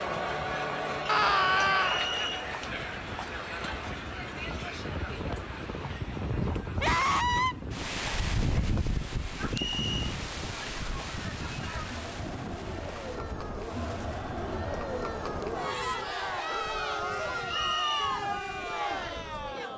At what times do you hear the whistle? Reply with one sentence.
You can hear the whistle from 1.8 to 2.5 s, from 9.5 to 10.2 s and from 17.4 to 18.1 s.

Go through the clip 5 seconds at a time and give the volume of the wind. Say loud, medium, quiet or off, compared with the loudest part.
medium, loud, medium, quiet.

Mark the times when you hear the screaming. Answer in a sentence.
You can hear the screaming from 1.1 to 2.0 s, from 6.8 to 7.5 s and from 16.9 to 17.9 s.